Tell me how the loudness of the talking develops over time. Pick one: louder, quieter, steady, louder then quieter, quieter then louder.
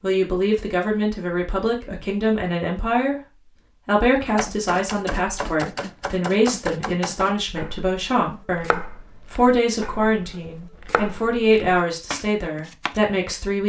steady.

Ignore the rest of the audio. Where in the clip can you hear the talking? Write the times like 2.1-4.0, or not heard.
0.0-13.6.